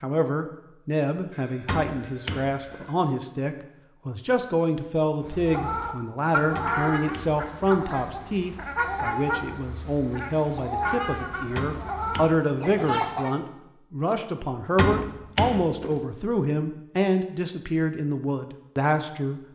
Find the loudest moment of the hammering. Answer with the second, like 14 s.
15 s.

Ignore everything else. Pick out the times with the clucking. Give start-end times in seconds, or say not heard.
5.2-13.3.